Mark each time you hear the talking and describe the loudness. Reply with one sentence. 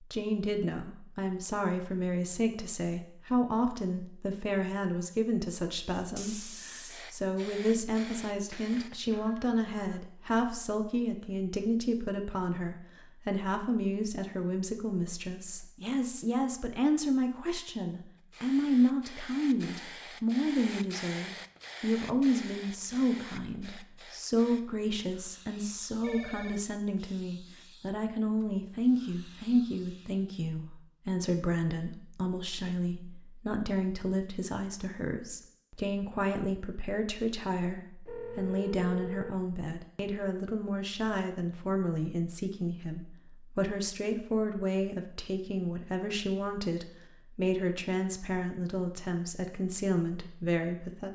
The talking can be heard from 0.0 to 51.1 s, at a steady volume.